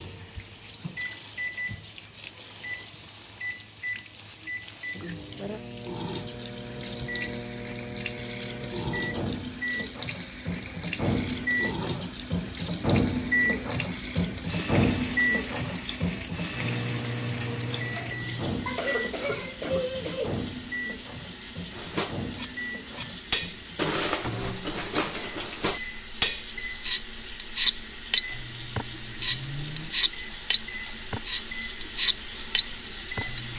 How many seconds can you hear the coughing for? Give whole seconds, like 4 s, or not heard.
2 s.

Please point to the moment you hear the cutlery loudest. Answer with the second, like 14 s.
28 s.